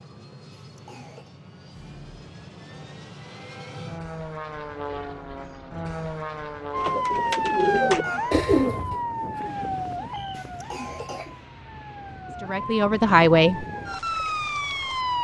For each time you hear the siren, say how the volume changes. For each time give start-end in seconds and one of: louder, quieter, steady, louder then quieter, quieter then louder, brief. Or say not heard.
6.7-15.1 quieter then louder.